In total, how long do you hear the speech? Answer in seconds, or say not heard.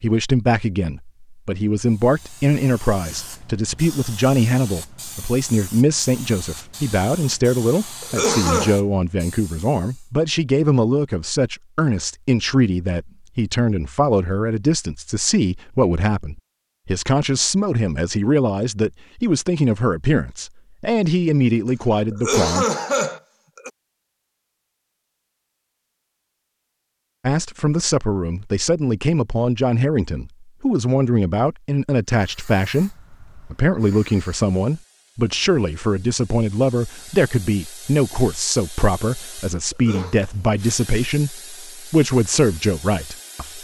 39 s.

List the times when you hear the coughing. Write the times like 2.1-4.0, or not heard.
8.0-8.8, 22.1-23.7, 39.7-40.2.